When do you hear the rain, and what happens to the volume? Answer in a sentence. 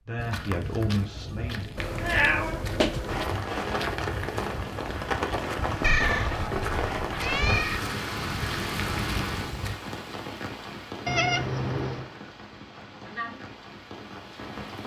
You can hear the rain from 3.0 to 14.8 s, getting quieter.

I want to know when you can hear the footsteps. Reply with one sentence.
The footsteps can be heard from 0.1 to 9.8 s.